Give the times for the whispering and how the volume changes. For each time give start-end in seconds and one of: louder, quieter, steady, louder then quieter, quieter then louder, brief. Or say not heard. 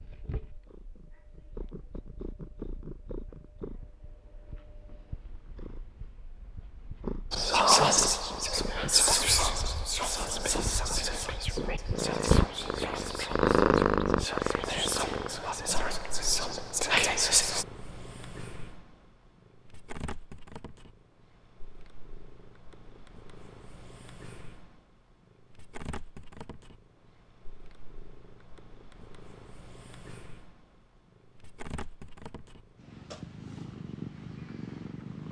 7.3-17.6 quieter then louder.